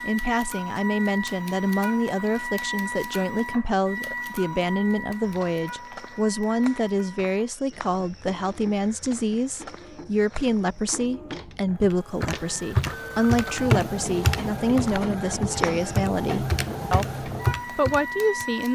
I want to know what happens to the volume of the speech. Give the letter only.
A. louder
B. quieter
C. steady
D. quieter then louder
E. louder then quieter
C.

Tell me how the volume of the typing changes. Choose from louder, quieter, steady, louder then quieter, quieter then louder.
quieter then louder.